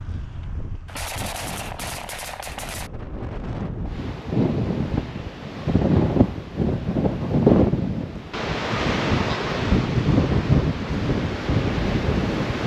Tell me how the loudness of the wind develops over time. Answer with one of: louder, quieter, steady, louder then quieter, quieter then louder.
louder.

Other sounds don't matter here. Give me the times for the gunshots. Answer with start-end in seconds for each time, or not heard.
0.8-2.9.